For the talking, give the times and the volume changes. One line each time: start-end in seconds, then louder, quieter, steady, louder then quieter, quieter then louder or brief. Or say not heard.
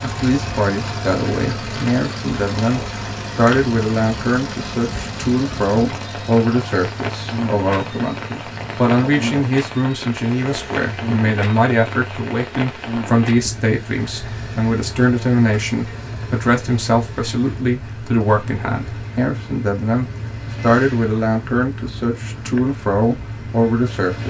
0.0-24.2 steady.